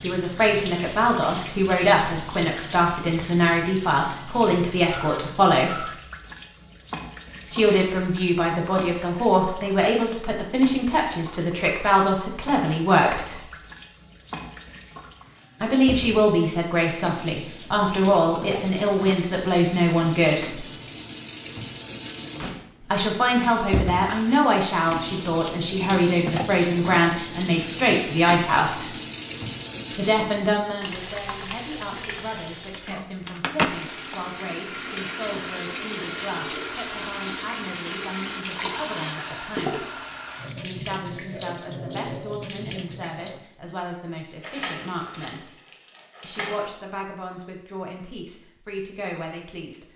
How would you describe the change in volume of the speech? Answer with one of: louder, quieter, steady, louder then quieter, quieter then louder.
quieter.